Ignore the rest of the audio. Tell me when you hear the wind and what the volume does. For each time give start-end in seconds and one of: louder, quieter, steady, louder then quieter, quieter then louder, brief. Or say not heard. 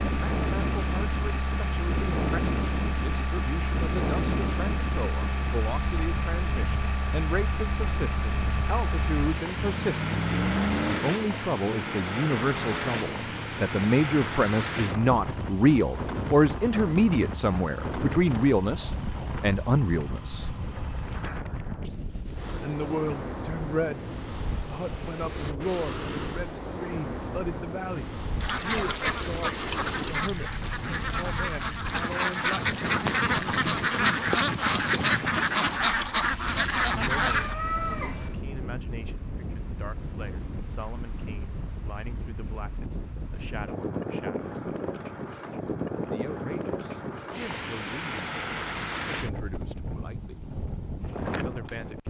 0.0-52.0 steady.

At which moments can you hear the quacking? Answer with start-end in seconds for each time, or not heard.
28.4-37.5.